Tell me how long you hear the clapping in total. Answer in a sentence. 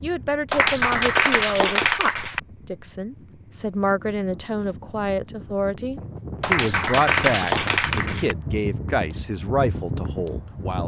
The clapping can be heard for 4 seconds in total.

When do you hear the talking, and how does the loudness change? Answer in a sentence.
The talking can be heard from 0.0 to 10.8 s, at a steady volume.